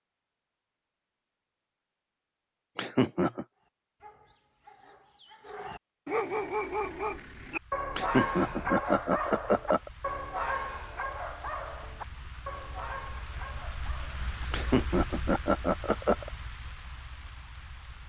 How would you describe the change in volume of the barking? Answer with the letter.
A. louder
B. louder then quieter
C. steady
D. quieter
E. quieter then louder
B.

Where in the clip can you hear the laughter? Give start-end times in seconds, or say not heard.
2.8-3.5, 8.0-9.9, 14.5-16.3.